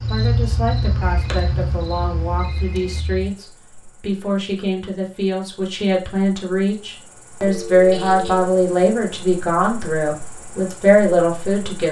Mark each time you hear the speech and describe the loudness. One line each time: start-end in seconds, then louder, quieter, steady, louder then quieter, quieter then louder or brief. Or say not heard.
0.1-11.8 louder.